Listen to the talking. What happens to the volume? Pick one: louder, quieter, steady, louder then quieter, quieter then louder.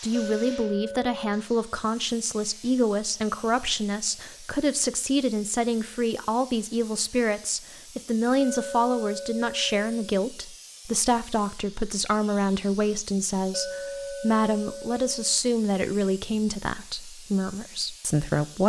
steady.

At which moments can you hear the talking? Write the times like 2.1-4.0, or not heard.
0.0-18.6.